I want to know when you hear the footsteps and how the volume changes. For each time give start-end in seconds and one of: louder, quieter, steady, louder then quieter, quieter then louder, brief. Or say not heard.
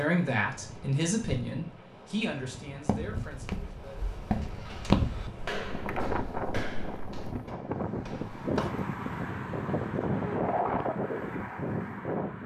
2.9-8.8 louder then quieter.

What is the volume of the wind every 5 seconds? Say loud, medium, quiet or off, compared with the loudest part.
quiet, loud, loud.